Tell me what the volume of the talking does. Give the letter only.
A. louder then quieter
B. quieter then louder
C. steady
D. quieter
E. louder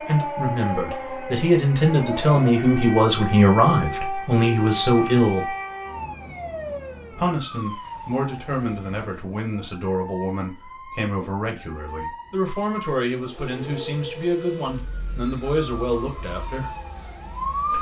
D.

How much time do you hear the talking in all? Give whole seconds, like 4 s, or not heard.
15 s.